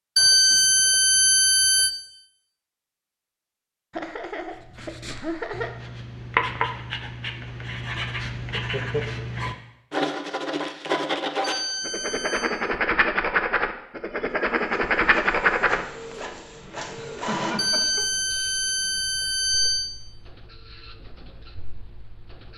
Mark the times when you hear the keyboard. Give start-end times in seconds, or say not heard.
not heard.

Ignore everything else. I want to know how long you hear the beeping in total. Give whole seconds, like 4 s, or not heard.
5 s.